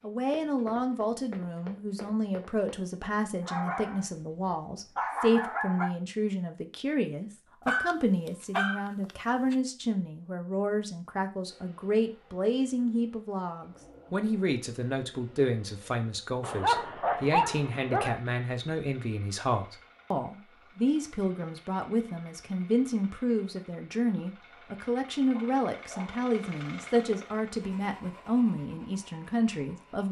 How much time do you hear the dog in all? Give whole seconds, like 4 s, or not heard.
6 s.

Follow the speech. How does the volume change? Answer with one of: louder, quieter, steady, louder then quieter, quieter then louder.
steady.